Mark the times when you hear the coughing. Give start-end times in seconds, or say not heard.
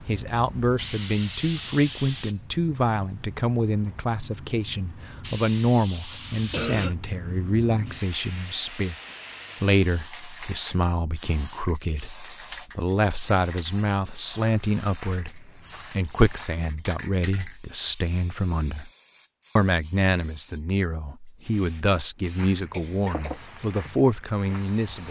6.5-7.0, 22.7-23.3.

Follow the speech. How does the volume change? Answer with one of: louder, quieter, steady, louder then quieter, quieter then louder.
steady.